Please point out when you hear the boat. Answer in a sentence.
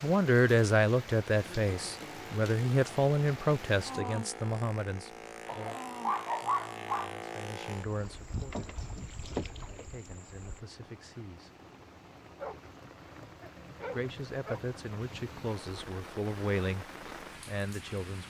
The boat can be heard from 1.6 to 10.6 s.